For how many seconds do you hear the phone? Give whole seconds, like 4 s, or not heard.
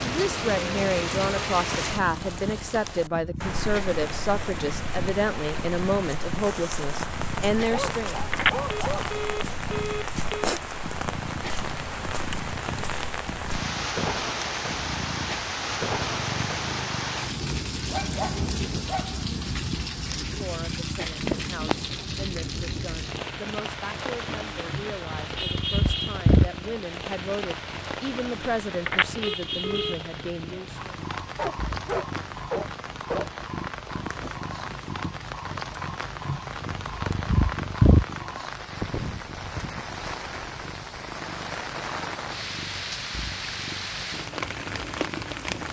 3 s.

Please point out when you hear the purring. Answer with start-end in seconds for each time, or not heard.
0.0-45.6.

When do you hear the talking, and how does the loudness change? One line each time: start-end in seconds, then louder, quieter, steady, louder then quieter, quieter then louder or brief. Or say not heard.
0.0-8.2 steady
20.4-30.8 louder.